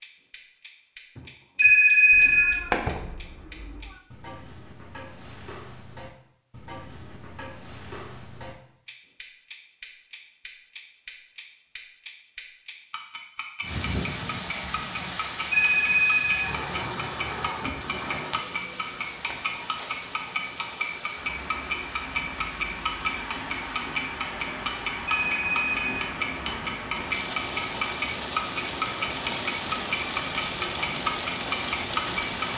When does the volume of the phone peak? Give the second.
2 s.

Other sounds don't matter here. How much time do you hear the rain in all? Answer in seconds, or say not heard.
19 s.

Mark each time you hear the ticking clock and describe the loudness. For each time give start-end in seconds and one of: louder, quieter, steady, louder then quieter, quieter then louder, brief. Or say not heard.
0.0-32.5 louder.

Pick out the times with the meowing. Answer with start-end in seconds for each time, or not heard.
2.1-4.0.